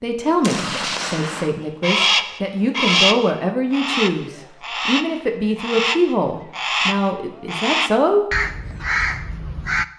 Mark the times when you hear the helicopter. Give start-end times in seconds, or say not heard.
not heard.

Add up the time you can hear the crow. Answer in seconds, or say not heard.
8 s.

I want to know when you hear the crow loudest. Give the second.
3 s.